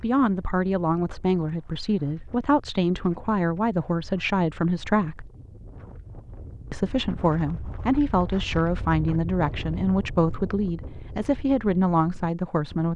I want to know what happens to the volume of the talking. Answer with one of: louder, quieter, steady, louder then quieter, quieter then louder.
steady.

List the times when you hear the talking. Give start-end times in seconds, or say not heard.
0.0-5.3, 6.7-12.9.